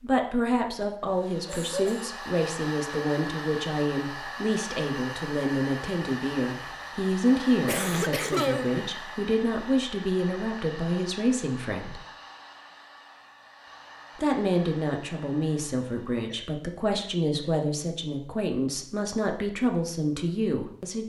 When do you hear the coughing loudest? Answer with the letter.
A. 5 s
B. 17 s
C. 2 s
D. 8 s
D.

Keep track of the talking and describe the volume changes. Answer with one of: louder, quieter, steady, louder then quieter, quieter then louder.
steady.